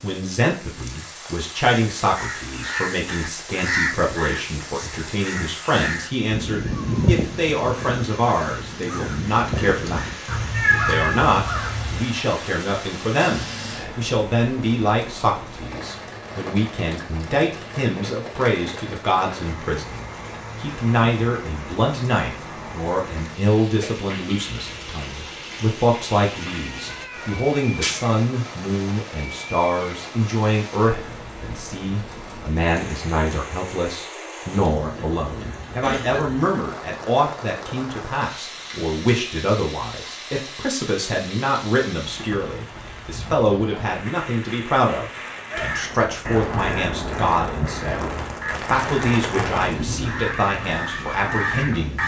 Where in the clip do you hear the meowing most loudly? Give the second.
11 s.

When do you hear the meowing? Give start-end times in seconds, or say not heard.
10.5-11.3, 26.6-28.0.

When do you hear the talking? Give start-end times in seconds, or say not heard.
0.0-52.0.